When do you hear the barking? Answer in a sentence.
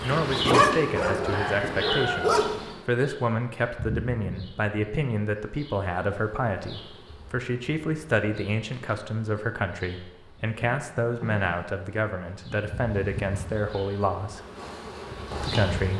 The barking can be heard from 0.0 to 2.5 s.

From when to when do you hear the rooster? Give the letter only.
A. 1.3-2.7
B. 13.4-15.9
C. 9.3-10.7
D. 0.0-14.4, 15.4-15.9
A.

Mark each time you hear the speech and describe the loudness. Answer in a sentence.
The speech can be heard from 0.0 to 14.4 s, at a steady volume; and briefly from 15.4 to 15.9 s.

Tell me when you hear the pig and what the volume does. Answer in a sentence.
You can't hear the pig here.